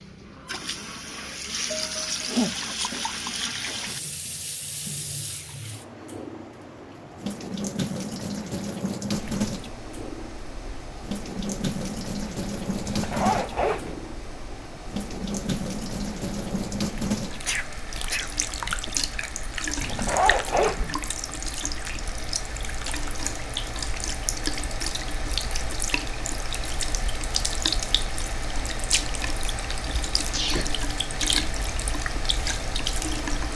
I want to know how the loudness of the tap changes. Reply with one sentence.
The volume of the tap stays about the same.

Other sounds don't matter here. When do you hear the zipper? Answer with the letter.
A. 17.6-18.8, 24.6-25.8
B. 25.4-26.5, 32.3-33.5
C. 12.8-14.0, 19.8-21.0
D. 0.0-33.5
C.